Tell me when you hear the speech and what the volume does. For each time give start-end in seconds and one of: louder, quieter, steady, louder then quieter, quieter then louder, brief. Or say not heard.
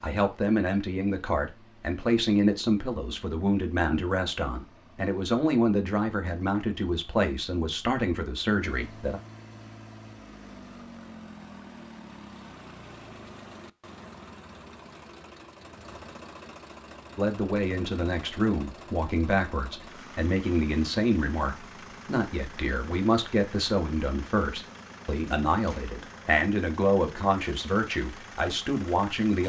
0.0-9.2 steady
17.1-29.4 steady.